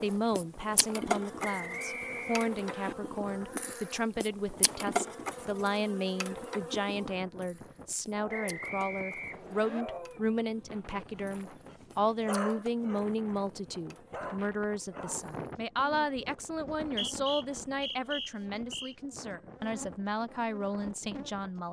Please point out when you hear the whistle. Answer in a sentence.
You can hear the whistle from 1.4 to 3.0 s, from 8.3 to 9.8 s and from 16.8 to 18.9 s.